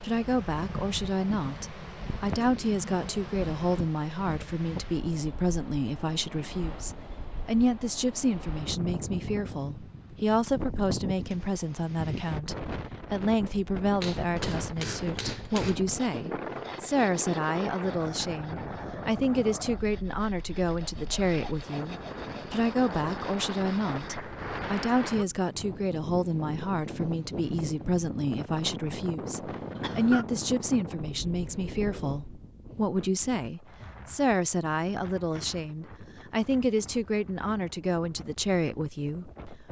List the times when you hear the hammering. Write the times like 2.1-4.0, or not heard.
14.0-15.8.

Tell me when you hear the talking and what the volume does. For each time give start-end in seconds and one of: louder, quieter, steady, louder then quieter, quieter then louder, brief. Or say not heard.
0.0-39.6 steady.